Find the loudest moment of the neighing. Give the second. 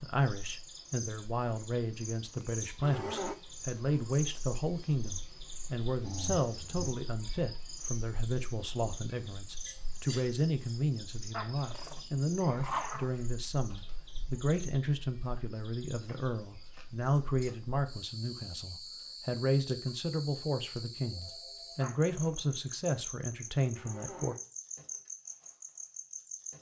3 s.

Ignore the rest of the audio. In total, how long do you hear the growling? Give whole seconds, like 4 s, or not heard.
3 s.